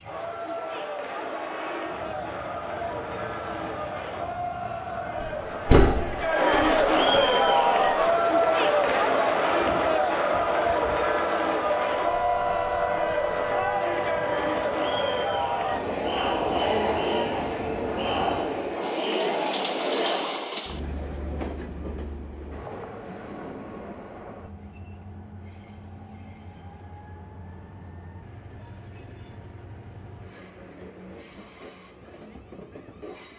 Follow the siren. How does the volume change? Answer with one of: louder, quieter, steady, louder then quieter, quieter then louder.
louder.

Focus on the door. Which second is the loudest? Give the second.
6 s.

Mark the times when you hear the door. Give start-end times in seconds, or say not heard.
5.2-7.2.